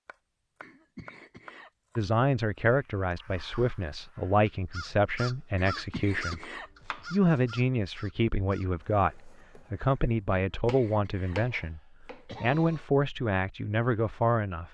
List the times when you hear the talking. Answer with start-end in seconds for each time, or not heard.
1.9-6.5, 7.1-14.6.